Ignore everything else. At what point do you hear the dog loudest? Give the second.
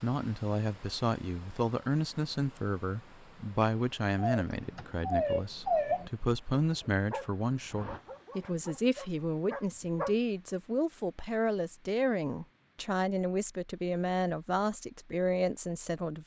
6 s.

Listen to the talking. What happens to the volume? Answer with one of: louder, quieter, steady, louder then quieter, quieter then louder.
steady.